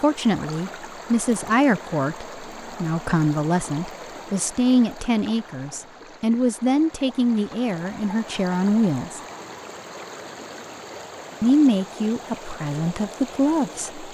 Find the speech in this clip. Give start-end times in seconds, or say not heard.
0.0-9.2, 11.4-14.0.